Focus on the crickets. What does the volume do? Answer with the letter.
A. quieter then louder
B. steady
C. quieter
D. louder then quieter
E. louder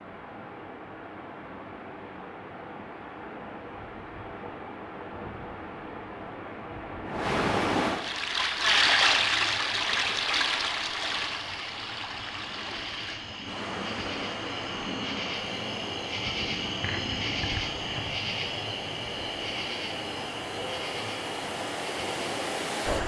D.